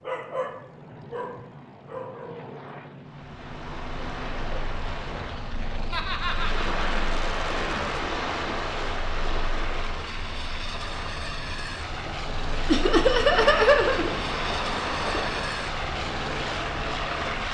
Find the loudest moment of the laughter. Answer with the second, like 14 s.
14 s.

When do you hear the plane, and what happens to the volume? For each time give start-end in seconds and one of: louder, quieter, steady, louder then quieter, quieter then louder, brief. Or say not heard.
0.0-17.5 louder.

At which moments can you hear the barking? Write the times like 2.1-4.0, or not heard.
0.0-2.8.